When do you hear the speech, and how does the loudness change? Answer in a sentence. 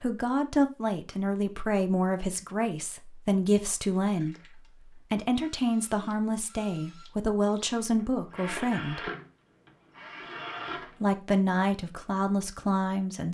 The speech can be heard from 0.0 to 9.1 s, at a steady volume; and briefly from 11.0 to 13.2 s.